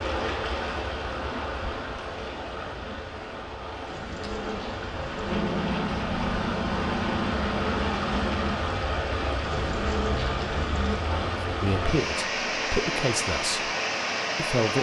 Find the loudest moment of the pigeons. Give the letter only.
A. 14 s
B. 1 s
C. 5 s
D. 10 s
D.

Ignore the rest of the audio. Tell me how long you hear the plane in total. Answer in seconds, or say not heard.
3 s.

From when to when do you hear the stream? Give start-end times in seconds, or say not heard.
0.0-14.7.